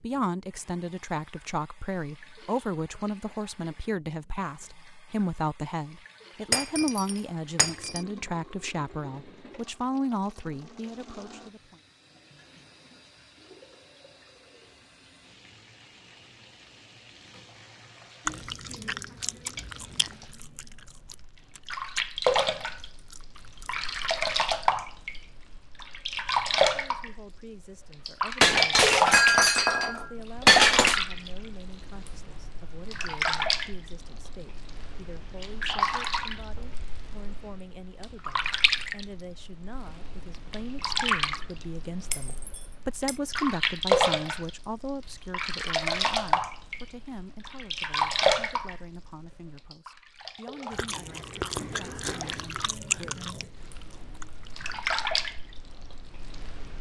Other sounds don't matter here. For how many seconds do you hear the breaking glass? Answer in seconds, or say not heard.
5 s.